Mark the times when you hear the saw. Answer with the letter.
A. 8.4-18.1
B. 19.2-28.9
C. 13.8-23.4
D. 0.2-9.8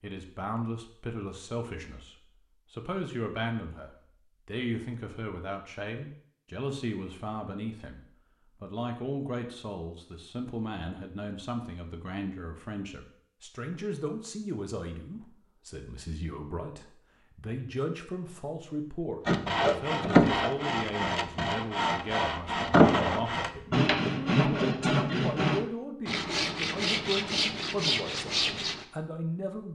B.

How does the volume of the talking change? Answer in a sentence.
The volume of the talking stays about the same.